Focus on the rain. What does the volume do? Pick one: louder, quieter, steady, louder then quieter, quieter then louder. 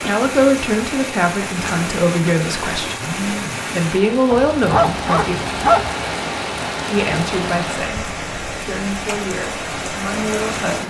steady.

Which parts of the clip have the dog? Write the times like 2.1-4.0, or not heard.
4.3-5.9.